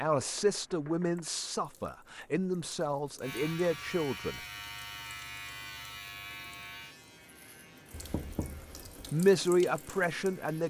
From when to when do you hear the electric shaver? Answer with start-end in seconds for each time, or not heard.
3.2-10.6.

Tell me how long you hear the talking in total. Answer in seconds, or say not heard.
6 s.